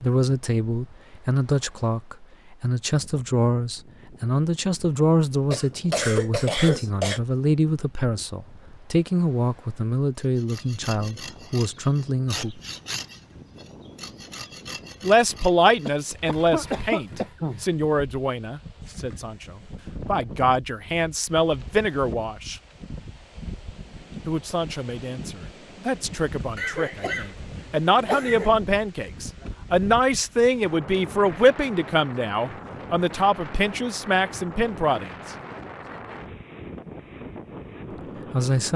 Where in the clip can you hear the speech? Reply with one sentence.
The speech can be heard from 0.0 to 12.6 s, from 15.0 to 22.6 s, from 24.2 to 35.1 s and from 38.3 to 38.7 s.